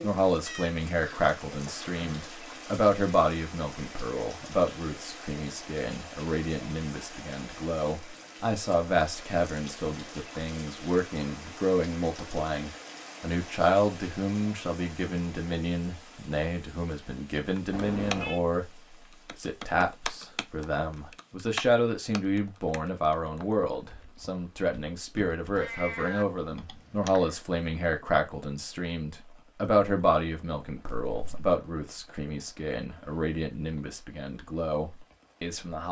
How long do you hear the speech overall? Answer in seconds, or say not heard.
35 s.